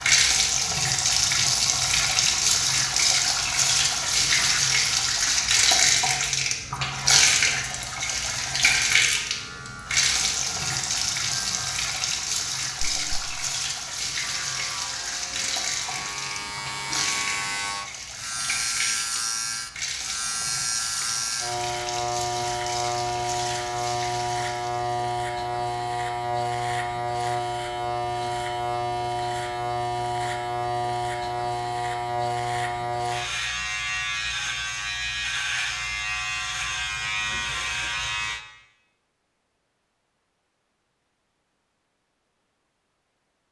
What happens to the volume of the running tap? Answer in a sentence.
The loudness of the running tap goes down.